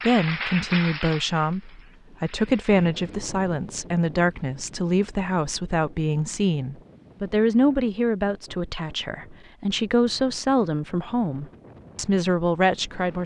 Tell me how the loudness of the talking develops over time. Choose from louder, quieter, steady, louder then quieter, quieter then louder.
steady.